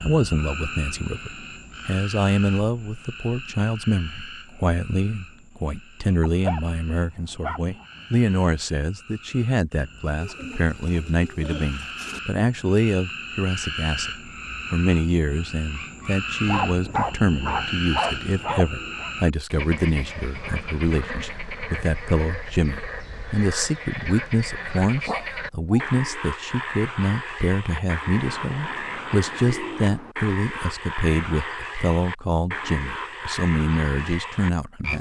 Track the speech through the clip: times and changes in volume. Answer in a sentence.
The speech can be heard from 0.0 to 34.9 s, at a steady volume.